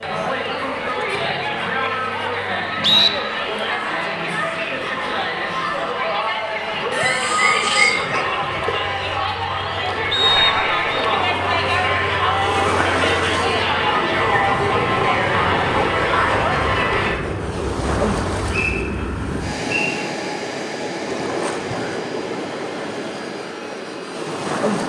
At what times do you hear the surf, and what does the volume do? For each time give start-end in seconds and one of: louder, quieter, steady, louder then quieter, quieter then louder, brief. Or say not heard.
11.1-24.8 steady.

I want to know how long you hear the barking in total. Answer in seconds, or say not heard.
2 s.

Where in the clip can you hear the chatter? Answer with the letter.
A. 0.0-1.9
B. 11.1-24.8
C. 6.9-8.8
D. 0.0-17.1
D.